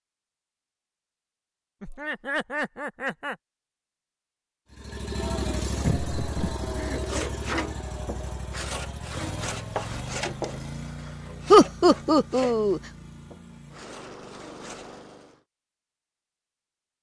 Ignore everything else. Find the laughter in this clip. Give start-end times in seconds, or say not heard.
1.8-3.4, 5.8-7.0, 11.5-12.8.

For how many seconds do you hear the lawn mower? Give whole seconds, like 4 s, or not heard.
11 s.